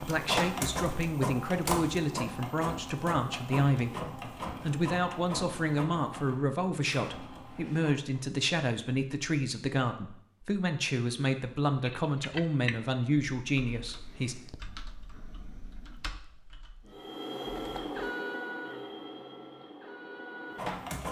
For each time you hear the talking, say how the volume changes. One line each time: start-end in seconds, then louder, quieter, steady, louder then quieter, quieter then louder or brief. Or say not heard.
0.0-14.3 steady.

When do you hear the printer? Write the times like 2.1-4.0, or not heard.
0.0-8.2, 16.9-21.0.